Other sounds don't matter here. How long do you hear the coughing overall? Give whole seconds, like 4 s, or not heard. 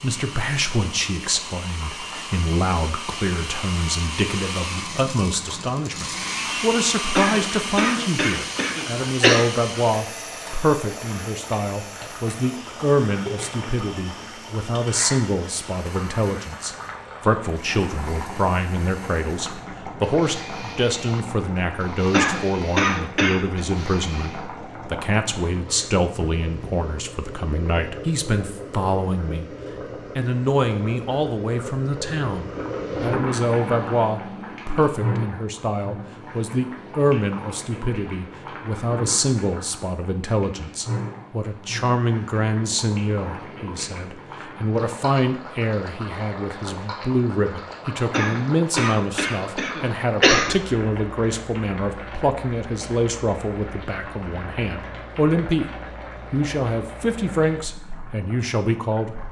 6 s.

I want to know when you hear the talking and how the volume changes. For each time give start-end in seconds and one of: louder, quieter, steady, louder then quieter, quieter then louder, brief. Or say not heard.
0.0-29.4 steady
30.1-55.7 steady
56.3-59.2 brief.